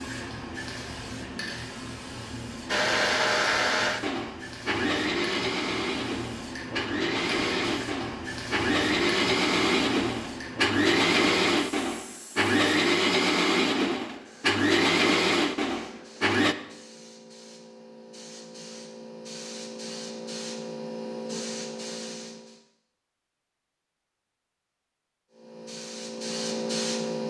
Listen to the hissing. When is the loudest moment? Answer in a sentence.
The loudest moment of the hissing is at 27 seconds.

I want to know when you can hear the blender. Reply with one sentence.
You can hear the blender from 2.6 to 16.6 s.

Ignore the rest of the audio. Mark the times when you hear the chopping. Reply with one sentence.
The chopping can't be heard in this clip.